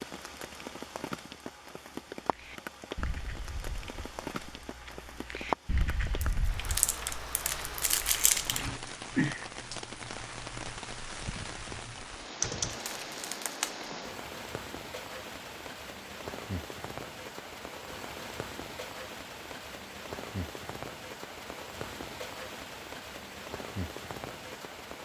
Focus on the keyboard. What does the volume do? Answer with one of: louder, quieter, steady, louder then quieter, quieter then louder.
louder.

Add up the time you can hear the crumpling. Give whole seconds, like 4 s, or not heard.
4 s.